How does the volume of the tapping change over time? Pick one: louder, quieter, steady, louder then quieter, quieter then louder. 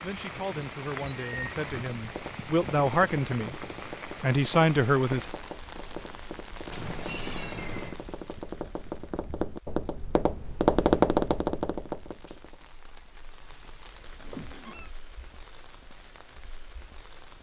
louder.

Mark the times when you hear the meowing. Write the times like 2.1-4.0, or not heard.
0.0-1.6, 6.7-8.0, 14.2-14.9.